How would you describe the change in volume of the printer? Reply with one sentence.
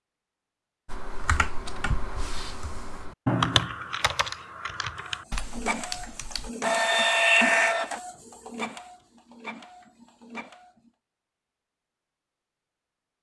The loudness of the printer goes up, then down.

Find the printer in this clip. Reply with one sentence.
The printer can be heard from 5.3 to 10.7 s.